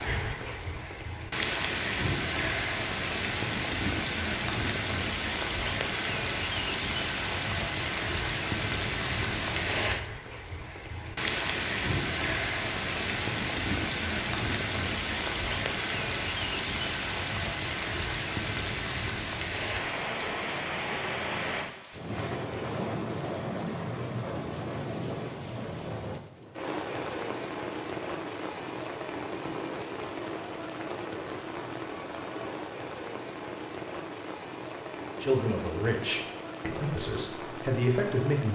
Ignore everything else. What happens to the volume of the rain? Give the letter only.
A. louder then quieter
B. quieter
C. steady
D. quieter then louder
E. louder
B.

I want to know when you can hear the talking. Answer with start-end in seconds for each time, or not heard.
35.2-38.5.